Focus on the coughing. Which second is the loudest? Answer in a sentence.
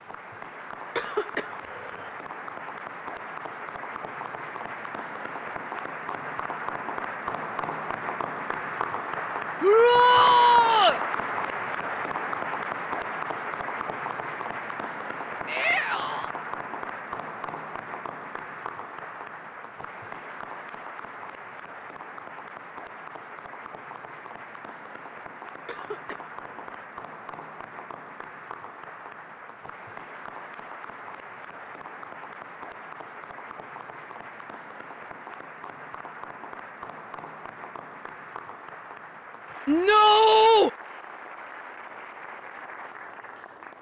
The loudest moment of the coughing is at 1 second.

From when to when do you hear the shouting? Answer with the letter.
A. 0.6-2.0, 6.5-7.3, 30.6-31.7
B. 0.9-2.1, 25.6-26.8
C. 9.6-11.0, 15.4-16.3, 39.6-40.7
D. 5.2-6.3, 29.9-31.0
C.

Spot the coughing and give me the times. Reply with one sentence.
The coughing can be heard from 0.9 to 2.1 s and from 25.6 to 26.8 s.